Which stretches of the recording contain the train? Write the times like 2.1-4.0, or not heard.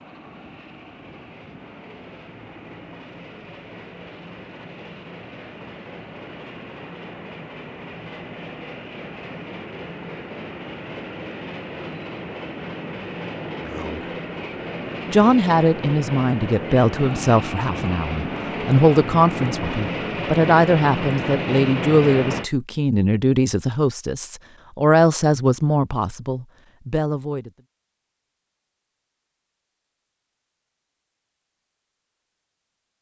0.0-22.5.